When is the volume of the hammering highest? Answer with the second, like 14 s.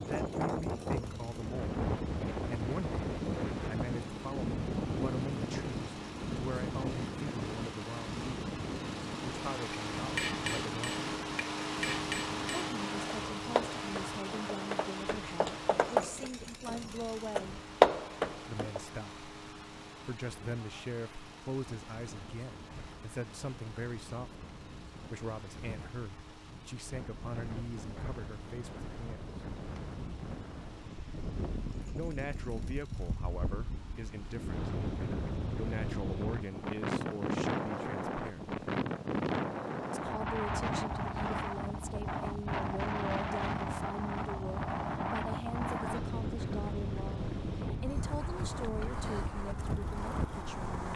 18 s.